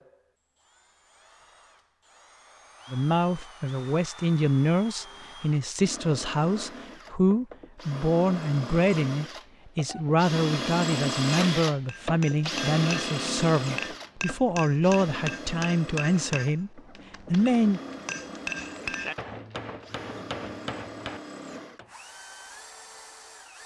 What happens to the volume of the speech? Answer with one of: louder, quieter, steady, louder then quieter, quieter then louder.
steady.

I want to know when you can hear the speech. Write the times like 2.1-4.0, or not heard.
2.9-17.8.